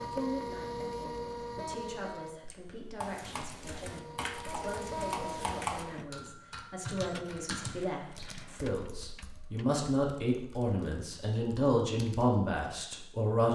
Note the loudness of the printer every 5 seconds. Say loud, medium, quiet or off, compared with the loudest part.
loud, medium, off.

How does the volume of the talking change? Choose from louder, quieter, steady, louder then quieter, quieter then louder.
louder.